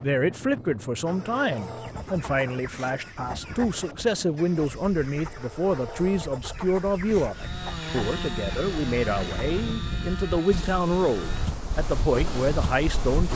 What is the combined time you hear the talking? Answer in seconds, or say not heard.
13 s.